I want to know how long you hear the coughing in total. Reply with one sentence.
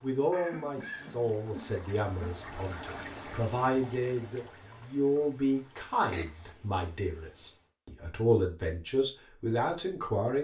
You can hear the coughing for 3 seconds altogether.